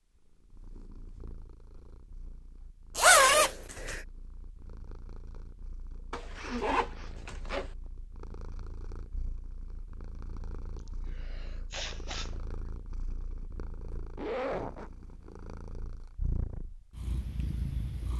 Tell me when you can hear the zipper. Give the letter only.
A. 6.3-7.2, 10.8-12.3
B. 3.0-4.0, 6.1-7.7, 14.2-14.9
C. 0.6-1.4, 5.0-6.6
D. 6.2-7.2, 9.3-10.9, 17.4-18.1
B.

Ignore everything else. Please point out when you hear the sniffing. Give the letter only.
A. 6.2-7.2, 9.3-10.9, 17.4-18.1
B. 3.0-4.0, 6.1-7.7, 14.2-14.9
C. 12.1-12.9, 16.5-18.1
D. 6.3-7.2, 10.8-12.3
D.